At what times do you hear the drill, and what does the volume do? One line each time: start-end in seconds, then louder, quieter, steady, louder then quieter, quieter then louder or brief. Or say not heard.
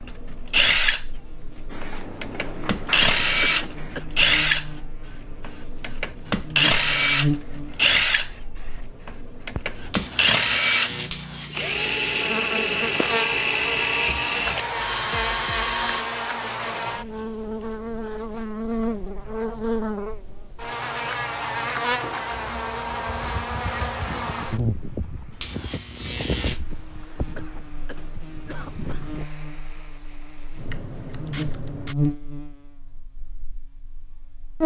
0.0-16.1 steady.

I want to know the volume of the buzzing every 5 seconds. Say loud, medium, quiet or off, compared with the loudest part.
quiet, loud, loud, loud, loud, medium, loud.